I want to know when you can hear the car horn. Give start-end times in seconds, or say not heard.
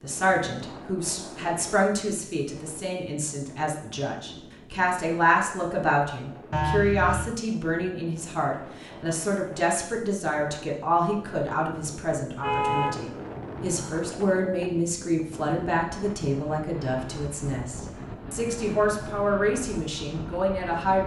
6.5-7.3, 12.3-14.0.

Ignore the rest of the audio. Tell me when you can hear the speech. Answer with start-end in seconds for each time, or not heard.
0.0-21.0.